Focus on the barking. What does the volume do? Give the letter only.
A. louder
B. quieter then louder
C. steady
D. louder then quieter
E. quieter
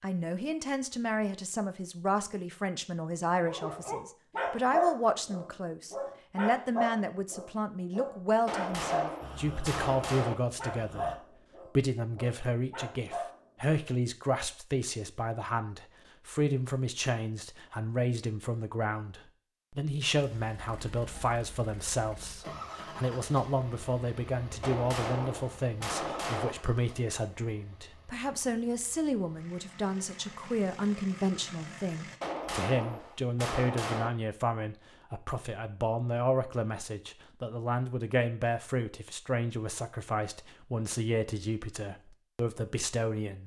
E.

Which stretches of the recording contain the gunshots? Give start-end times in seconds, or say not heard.
8.4-10.3, 24.6-26.5, 32.2-34.1.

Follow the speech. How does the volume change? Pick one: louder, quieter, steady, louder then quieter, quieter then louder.
steady.